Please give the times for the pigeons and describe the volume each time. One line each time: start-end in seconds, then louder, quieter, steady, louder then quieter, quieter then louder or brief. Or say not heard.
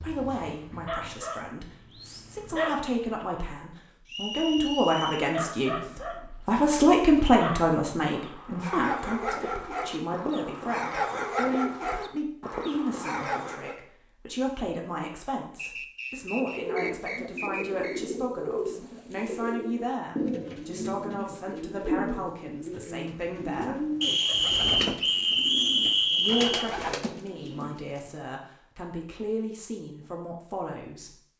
16.5-28.1 steady.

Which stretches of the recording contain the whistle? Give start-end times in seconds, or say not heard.
4.0-5.3, 15.6-18.0, 24.0-26.7.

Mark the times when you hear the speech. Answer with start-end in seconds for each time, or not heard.
0.0-23.9, 26.1-31.1.